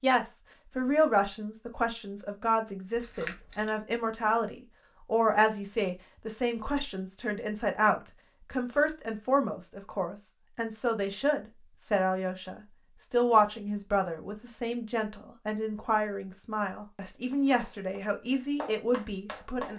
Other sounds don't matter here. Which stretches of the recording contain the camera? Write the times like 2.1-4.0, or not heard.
3.0-3.8.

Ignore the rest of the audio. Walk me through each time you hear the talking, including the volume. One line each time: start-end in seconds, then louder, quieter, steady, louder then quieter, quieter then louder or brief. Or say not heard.
0.0-19.7 steady.